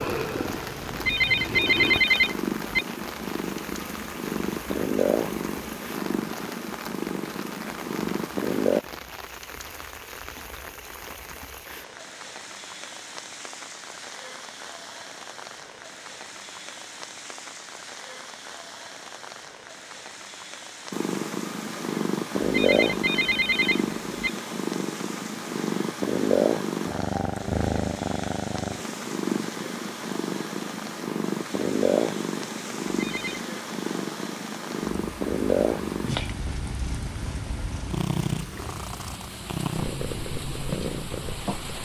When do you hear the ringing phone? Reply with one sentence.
The ringing phone can be heard from 0.9 to 2.9 s, from 22.4 to 24.3 s and from 32.9 to 33.4 s.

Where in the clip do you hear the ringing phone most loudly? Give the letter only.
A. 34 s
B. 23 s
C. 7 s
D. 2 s
D.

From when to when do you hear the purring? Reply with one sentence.
The purring can be heard from 0.0 to 8.8 s and from 20.9 to 41.8 s.